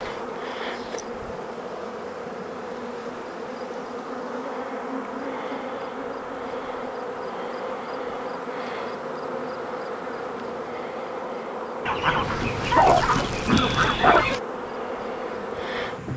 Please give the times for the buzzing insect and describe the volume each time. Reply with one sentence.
You can hear the buzzing insect from 0.0 to 16.1 s, at a steady volume.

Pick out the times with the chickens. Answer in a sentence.
You can hear the chickens from 11.8 to 14.4 s.